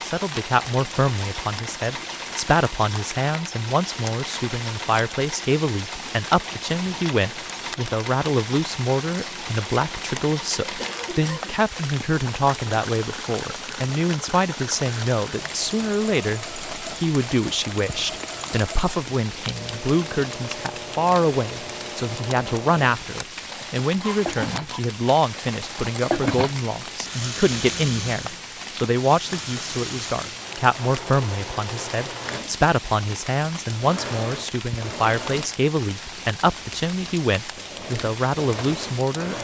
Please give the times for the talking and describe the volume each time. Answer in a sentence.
You can hear the talking from 0.0 to 39.3 s, at a steady volume.